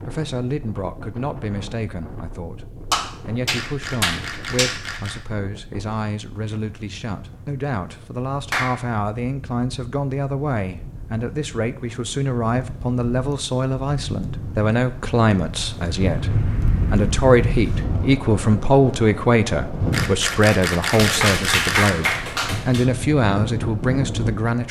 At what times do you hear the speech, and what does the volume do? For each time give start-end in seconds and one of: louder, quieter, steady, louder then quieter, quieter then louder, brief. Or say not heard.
0.0-24.6 louder.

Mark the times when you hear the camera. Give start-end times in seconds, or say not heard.
3.5-5.2, 19.9-21.9.